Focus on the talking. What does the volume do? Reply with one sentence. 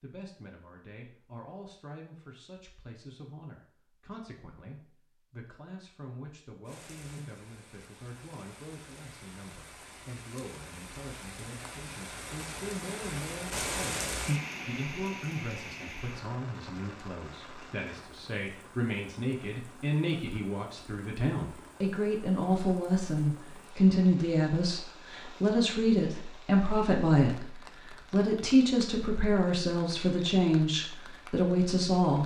The loudness of the talking goes up.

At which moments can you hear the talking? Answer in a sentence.
The talking can be heard from 0.0 to 32.2 s.